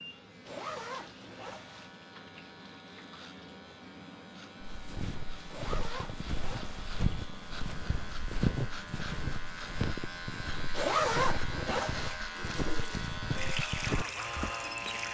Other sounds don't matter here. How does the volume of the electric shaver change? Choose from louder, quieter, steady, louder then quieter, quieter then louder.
louder.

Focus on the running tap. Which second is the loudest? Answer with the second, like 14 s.
14 s.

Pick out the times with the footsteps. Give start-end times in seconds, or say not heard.
4.6-14.6.